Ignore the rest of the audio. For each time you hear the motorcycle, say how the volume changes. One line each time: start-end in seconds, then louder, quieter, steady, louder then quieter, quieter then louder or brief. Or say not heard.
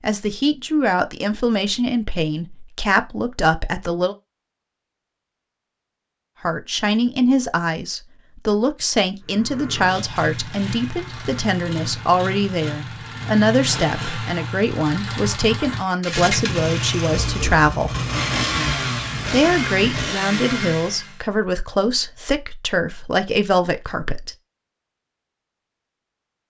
9.2-21.2 louder.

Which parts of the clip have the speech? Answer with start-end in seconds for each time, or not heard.
0.0-4.2, 6.4-17.9, 19.3-24.4.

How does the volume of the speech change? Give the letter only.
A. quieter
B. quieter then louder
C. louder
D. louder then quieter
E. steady
E.